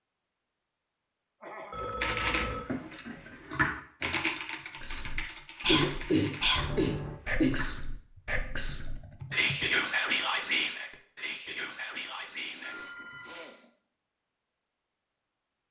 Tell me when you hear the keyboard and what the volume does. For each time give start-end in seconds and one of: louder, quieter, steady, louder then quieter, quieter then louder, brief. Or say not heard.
2.0-9.7 quieter.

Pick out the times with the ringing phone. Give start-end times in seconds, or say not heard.
1.7-2.6, 6.5-7.2, 12.6-13.6.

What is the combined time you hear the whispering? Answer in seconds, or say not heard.
8 s.